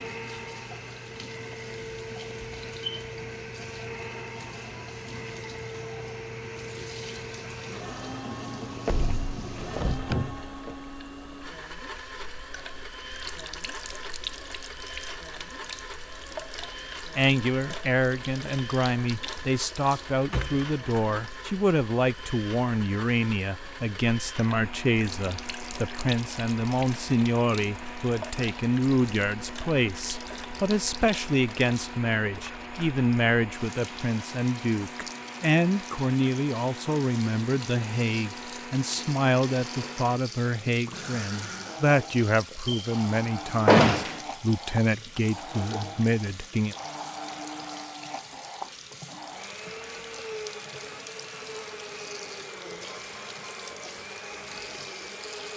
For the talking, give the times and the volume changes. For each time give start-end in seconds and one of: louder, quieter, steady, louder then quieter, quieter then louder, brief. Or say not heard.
17.1-46.8 steady.